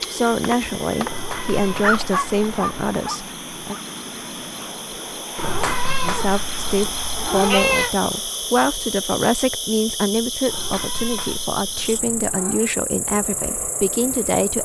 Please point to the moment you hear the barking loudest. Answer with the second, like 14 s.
2 s.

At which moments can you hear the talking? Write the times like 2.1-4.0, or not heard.
0.0-3.8, 6.0-14.6.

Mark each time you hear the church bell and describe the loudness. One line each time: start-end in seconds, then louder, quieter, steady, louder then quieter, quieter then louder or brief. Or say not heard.
not heard.